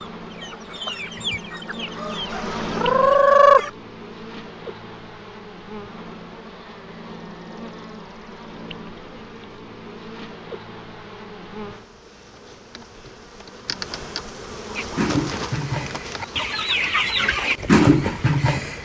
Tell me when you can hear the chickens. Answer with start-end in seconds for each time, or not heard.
0.0-3.7, 14.8-18.8.